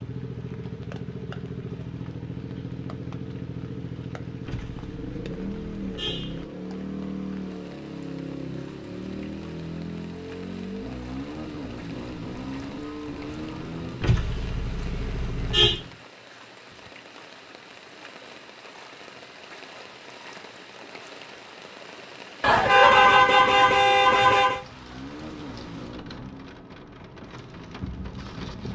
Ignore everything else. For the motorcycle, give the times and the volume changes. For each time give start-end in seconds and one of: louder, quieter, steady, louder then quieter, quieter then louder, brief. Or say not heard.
0.0-16.1 steady
24.6-28.7 quieter then louder.